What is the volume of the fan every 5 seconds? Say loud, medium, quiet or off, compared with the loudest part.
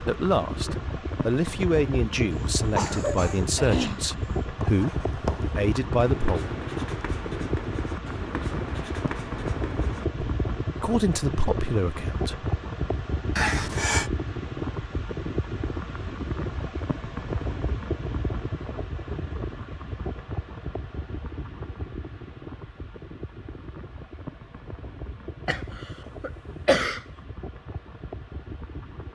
loud, loud, loud, loud, medium, medium.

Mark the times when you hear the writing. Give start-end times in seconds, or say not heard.
4.5-10.2.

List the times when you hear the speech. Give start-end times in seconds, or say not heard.
0.0-6.5, 10.8-12.4.